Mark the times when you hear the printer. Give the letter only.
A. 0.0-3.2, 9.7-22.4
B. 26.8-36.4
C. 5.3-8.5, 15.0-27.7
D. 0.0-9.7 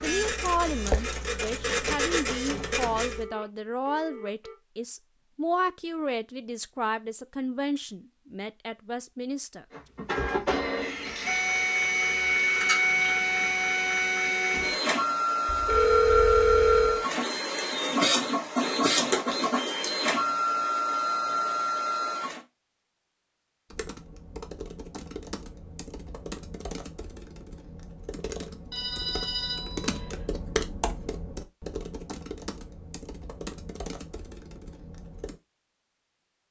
A.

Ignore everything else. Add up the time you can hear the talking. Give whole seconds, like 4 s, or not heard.
10 s.